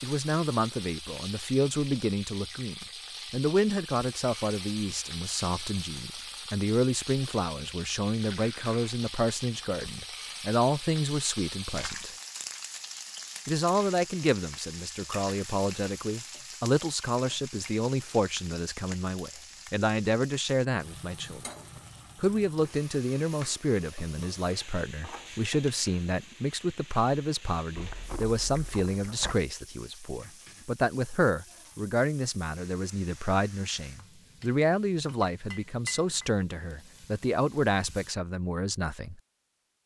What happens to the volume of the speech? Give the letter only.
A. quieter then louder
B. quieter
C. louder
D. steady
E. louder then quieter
D.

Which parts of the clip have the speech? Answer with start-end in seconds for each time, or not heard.
0.0-12.1, 13.4-21.4, 22.1-39.2.